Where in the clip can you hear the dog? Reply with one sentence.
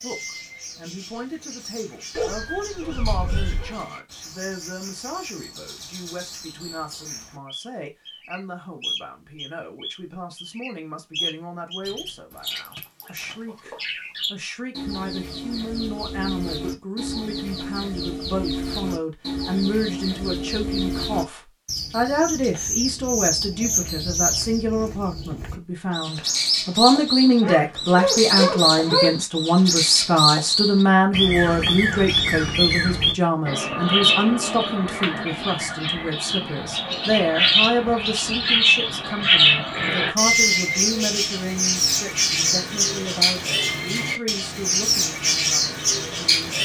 You can hear the dog from 2.1 to 3.8 s and from 27.4 to 29.1 s.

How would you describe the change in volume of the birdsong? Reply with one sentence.
The volume of the birdsong goes up.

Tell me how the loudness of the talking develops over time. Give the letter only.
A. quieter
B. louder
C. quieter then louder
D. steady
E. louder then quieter
E.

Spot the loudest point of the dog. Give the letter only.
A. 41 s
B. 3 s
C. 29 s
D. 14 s
C.